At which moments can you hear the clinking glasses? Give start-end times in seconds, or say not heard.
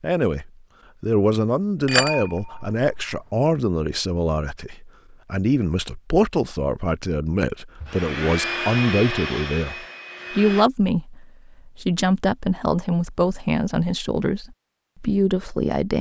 1.9-3.2.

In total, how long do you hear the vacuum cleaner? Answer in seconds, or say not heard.
3 s.